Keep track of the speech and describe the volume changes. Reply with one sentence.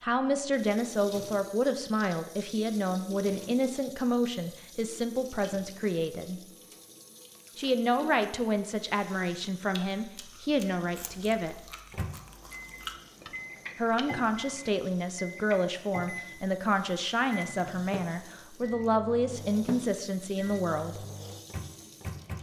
The volume of the speech stays about the same.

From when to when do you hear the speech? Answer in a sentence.
The speech can be heard from 0.0 to 6.4 s, from 7.5 to 11.6 s and from 13.8 to 21.1 s.